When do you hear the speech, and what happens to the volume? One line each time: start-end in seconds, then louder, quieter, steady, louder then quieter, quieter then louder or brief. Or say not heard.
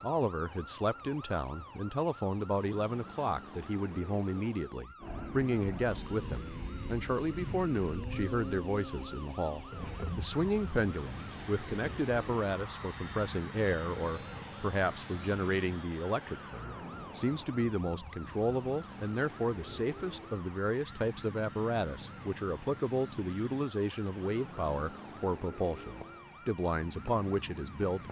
0.0-28.0 steady.